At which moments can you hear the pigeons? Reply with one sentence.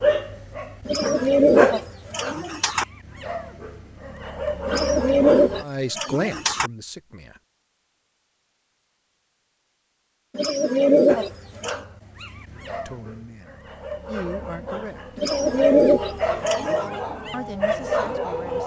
The pigeons can be heard from 0.8 to 2.9 s, from 4.7 to 6.7 s, from 10.3 to 11.8 s and from 15.2 to 16.9 s.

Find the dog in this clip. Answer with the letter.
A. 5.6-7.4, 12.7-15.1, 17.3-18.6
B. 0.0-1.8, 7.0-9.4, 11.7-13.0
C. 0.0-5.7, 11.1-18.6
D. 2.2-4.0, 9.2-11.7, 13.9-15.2
C.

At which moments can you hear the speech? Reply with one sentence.
You can hear the speech from 5.6 to 7.4 s, from 12.7 to 15.1 s and from 17.3 to 18.6 s.